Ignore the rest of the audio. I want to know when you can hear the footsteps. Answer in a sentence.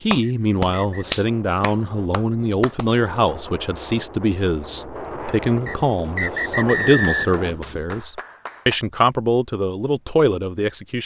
You can't hear the footsteps here.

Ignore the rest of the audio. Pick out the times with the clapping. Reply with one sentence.
The clapping can be heard from 0.1 to 2.9 s and from 6.8 to 8.8 s.